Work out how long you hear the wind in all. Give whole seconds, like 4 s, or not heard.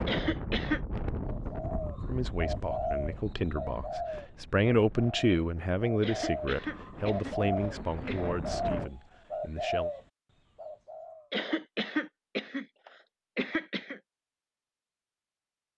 9 s.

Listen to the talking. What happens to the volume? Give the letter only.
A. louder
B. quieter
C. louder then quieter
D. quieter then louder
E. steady
C.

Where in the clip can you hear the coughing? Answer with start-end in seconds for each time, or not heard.
0.1-0.8, 6.0-8.3, 11.3-14.0.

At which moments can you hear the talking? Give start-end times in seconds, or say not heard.
2.0-9.9.